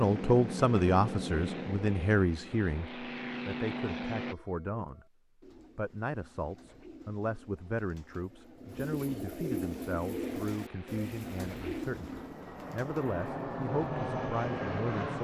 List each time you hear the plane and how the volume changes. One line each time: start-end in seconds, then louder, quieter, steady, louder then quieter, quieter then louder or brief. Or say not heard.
0.0-4.3 quieter then louder
9.7-15.2 louder.